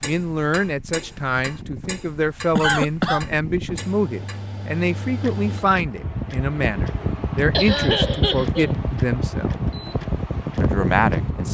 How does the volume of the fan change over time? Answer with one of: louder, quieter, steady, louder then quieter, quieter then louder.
louder.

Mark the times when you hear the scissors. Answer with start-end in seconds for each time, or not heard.
not heard.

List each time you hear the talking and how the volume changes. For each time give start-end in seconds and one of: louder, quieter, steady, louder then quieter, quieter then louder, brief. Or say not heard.
0.0-9.6 steady
10.6-11.4 brief.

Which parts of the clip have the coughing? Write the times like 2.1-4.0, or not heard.
2.5-3.2, 7.5-8.8.